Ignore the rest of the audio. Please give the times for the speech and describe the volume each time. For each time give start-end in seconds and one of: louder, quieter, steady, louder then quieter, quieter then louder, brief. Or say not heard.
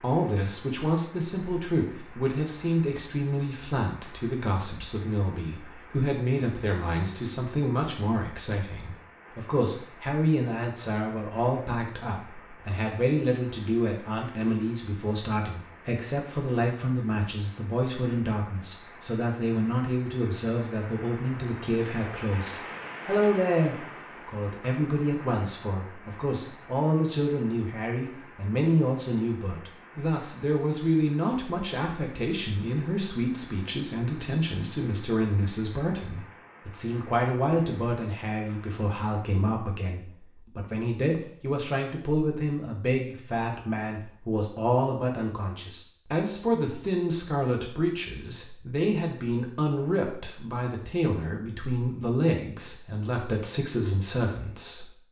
0.0-54.9 steady.